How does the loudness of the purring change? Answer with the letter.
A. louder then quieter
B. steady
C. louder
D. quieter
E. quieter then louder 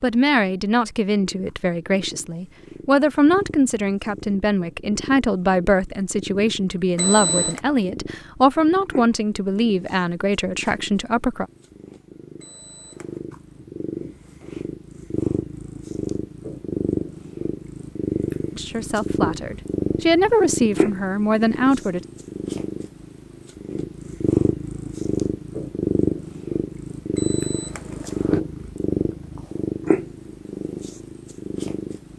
C.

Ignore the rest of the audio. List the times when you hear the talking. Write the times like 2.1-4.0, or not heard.
0.0-11.4, 18.6-22.0.